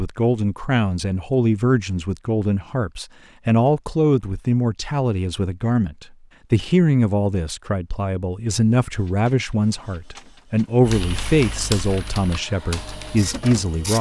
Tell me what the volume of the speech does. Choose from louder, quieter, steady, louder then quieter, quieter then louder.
steady.